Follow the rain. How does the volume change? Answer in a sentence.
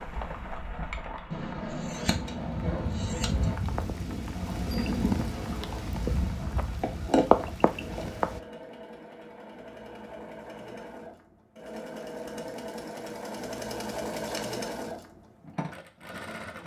The volume of the rain goes up.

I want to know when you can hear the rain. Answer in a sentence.
The rain can be heard from 0.0 to 8.4 s.